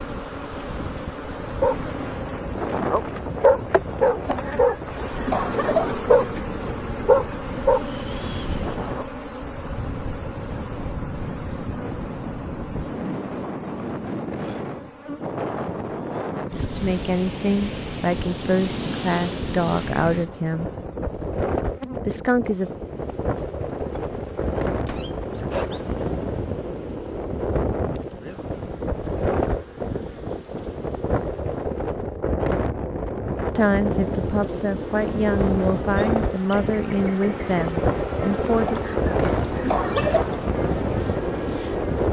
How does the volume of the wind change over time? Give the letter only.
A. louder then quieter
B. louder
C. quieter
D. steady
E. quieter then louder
B.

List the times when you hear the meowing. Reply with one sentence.
You can hear the meowing from 24.9 to 25.9 s.